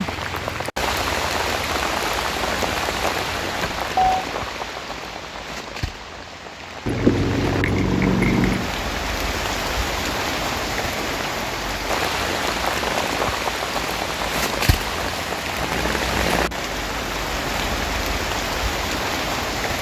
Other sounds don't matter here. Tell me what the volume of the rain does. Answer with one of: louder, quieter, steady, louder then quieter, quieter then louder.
quieter then louder.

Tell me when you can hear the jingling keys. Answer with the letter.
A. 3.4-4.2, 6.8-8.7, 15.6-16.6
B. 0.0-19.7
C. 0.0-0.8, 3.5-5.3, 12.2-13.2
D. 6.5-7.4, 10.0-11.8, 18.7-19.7
A.